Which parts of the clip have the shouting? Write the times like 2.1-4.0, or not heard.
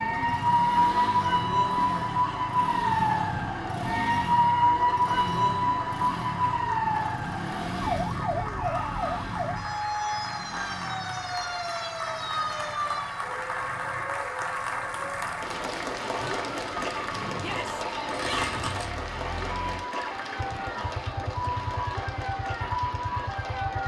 8.3-9.2, 17.4-18.6.